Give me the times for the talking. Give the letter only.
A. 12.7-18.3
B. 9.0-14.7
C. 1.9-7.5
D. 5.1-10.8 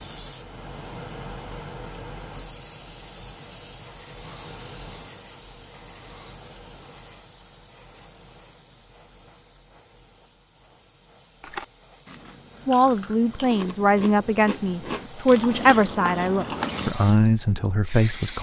A.